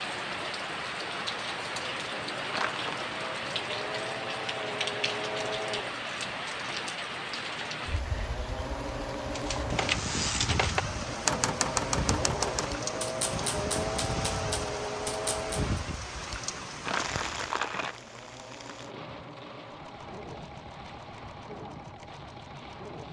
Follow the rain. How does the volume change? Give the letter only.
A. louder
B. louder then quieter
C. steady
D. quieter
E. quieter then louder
D.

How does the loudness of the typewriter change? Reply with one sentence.
The loudness of the typewriter goes down.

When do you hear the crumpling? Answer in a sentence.
You can hear the crumpling from 2.5 to 3.1 s and from 16.9 to 17.9 s.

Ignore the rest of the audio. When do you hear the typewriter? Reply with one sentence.
You can hear the typewriter from 9.3 to 15.6 s.